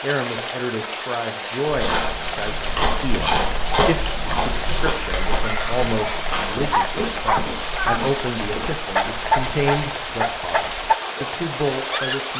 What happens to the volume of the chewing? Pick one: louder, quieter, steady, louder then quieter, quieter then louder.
quieter.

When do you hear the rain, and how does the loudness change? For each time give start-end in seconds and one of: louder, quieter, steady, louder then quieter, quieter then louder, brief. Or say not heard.
0.0-12.3 steady.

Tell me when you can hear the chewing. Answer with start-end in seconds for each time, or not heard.
1.6-9.9.